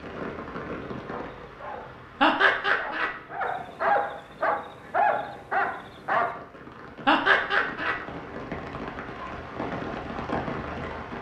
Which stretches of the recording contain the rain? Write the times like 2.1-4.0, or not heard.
0.0-11.1.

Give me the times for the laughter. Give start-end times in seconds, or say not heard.
2.2-3.1, 7.0-8.0.